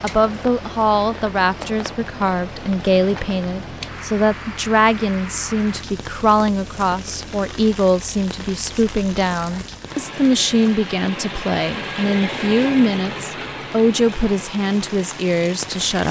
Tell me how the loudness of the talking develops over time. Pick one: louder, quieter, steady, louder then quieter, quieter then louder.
steady.